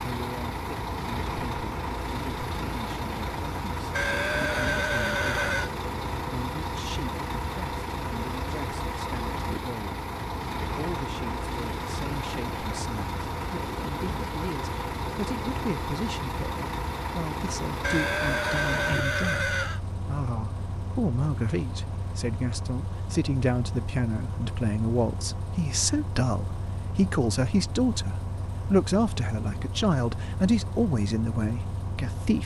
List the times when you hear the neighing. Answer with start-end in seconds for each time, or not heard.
3.9-5.7, 17.8-19.8.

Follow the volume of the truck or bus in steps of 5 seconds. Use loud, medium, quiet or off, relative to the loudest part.
loud, loud, loud, loud, medium, medium, medium.